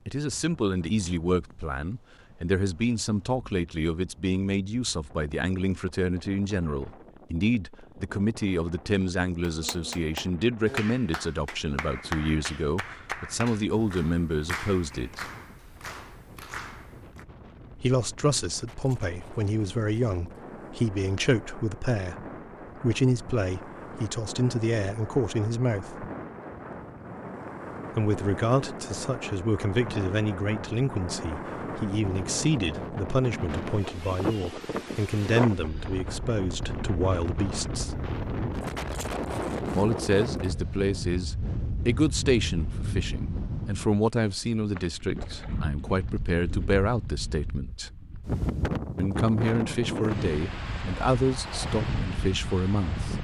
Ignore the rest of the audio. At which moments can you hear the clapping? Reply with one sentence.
You can hear the clapping from 9.4 to 17.2 s.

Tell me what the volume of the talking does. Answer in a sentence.
The loudness of the talking stays about the same.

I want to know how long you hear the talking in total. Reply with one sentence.
You can hear the talking for 46 seconds altogether.